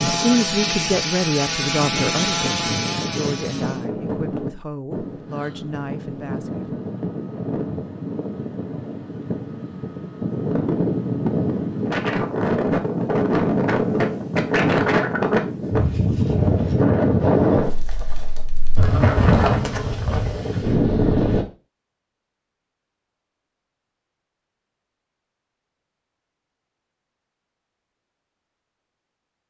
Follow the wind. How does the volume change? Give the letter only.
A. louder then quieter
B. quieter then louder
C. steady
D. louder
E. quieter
D.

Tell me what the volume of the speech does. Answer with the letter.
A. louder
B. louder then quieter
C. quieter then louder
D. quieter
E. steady
D.